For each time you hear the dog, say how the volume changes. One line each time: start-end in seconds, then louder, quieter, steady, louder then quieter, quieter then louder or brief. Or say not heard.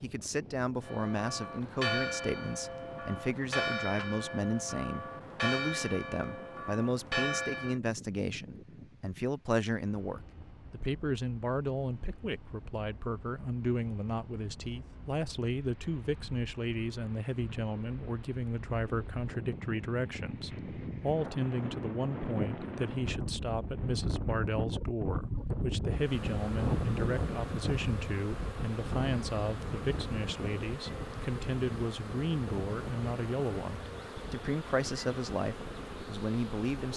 not heard.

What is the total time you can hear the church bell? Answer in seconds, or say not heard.
7 s.